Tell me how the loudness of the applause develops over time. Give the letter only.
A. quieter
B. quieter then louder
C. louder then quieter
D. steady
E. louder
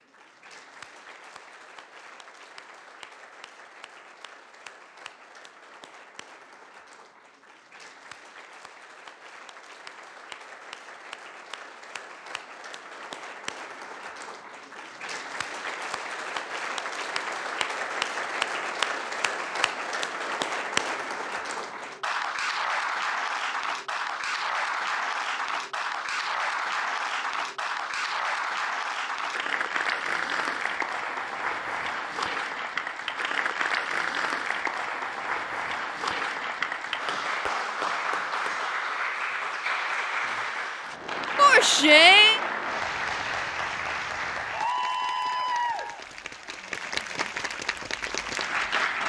E.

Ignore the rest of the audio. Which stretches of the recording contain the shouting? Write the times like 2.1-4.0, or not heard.
41.4-42.4.